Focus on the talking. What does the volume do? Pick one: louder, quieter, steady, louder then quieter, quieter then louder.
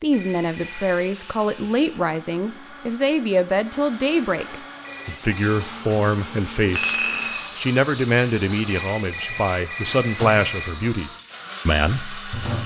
steady.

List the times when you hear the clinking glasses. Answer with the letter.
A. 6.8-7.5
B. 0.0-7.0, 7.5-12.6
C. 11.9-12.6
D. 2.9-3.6
A.